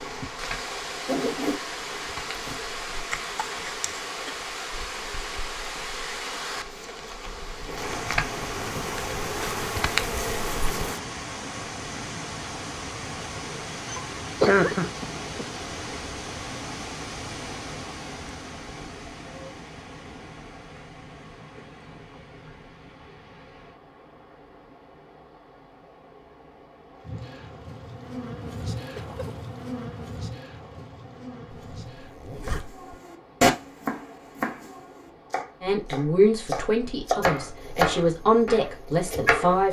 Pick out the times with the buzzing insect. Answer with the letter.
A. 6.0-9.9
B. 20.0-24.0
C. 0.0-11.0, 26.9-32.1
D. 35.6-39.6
C.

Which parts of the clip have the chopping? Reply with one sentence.
The chopping can be heard from 32.5 to 39.6 s.